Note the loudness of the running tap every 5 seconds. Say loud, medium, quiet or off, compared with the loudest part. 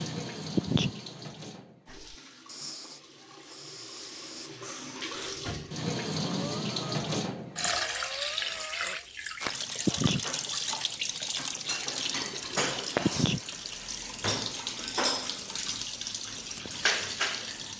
medium, loud, loud, loud.